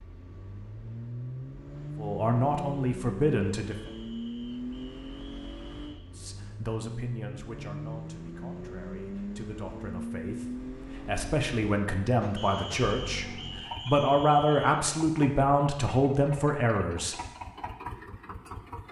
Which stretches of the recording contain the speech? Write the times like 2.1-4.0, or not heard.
1.9-3.9, 6.2-17.1.